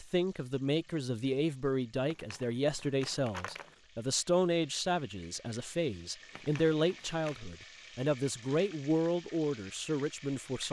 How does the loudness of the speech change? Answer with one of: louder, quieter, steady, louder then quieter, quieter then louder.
steady.